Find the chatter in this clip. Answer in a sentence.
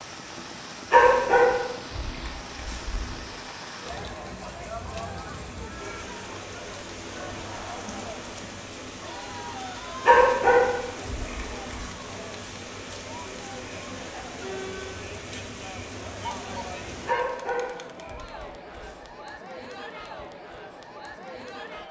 You can hear the chatter from 3.8 to 21.8 s.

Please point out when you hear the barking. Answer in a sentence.
You can hear the barking from 0.9 to 3.2 s, from 10.1 to 11.8 s and from 17.1 to 19.1 s.